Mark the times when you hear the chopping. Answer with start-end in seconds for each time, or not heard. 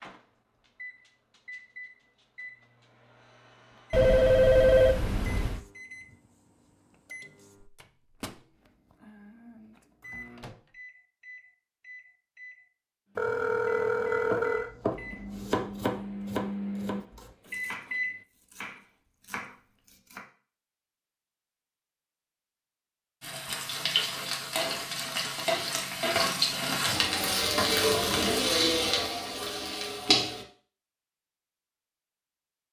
14.3-20.2.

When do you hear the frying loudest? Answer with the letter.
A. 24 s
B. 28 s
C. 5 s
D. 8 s
B.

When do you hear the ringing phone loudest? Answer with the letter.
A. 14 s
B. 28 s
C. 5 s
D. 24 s
C.